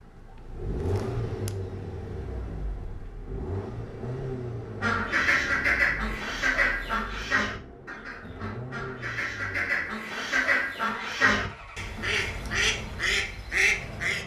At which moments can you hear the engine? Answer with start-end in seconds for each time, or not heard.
0.0-14.2.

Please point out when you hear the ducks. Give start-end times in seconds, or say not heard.
4.8-14.2.